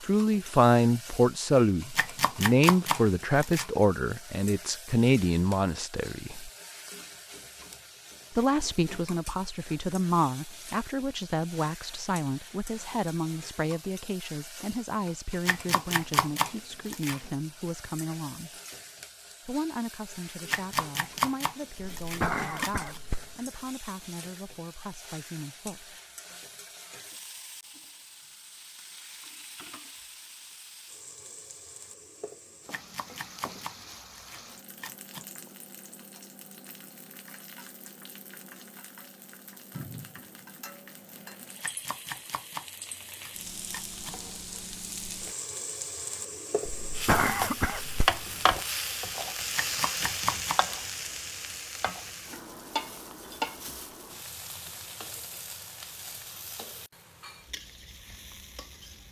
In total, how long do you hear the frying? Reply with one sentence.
You can hear the frying for 59 seconds altogether.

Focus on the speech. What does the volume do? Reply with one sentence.
The loudness of the speech goes down.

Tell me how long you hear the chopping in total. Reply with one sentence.
The chopping can be heard for 12 seconds in total.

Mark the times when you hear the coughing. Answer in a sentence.
You can hear the coughing from 21.8 to 23.4 s and from 46.6 to 48.6 s.